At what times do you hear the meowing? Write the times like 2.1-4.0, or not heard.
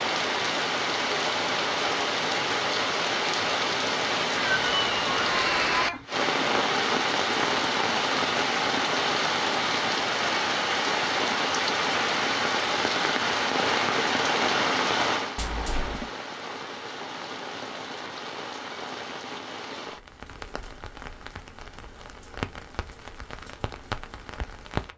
4.3-6.0, 15.3-16.1.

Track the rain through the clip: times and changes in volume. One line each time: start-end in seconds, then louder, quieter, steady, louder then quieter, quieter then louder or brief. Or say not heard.
0.0-24.9 quieter.